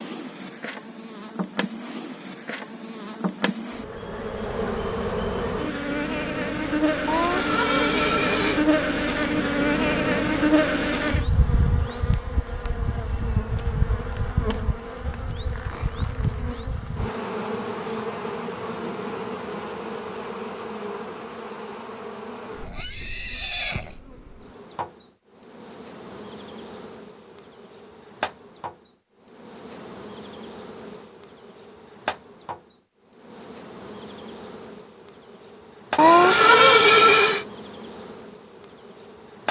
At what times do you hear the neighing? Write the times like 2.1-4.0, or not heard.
7.0-8.7, 22.6-23.9, 36.0-37.5.